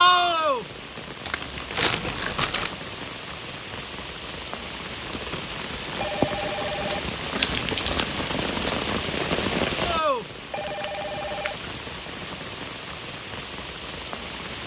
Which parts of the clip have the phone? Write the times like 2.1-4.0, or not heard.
1.8-2.5, 6.0-7.0, 10.5-11.6.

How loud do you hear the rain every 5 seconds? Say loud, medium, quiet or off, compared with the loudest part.
loud, loud, medium.